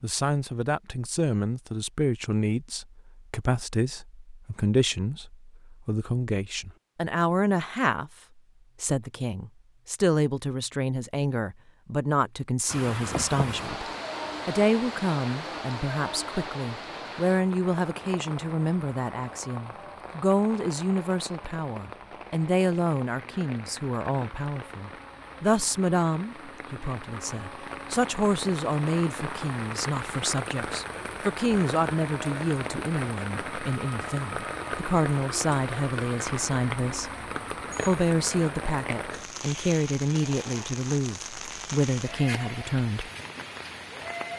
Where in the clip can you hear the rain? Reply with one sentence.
The rain can be heard from 12.7 to 44.3 s.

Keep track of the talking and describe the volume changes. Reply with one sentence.
The volume of the talking stays about the same.